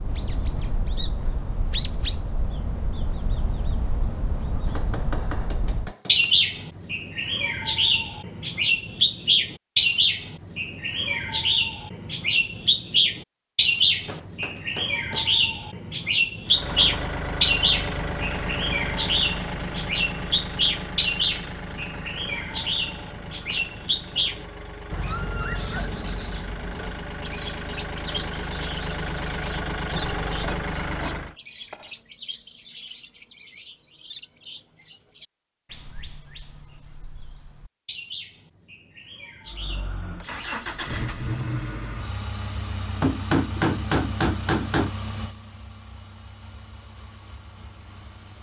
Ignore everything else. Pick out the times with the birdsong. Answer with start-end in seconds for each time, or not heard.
0.0-40.6.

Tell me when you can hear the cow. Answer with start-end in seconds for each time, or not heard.
not heard.